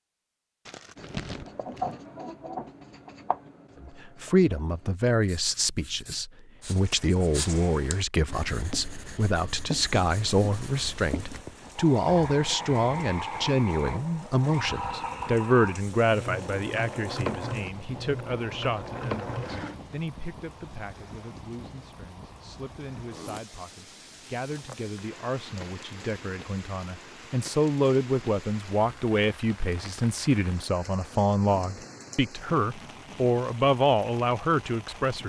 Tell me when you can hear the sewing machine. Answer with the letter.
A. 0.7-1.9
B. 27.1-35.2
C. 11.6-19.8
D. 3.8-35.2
C.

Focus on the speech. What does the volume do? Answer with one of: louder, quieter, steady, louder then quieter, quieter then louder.
quieter then louder.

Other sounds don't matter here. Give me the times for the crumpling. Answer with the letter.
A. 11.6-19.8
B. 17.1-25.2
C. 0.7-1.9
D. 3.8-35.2
C.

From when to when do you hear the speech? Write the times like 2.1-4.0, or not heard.
3.8-35.2.